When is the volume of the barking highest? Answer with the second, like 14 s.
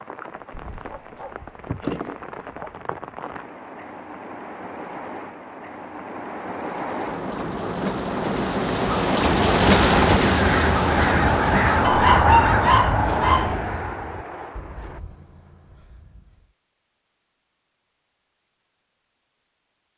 12 s.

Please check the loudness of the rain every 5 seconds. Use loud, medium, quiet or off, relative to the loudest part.
quiet, loud, loud, off.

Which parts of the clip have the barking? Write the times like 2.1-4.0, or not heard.
0.6-2.7, 11.8-13.6.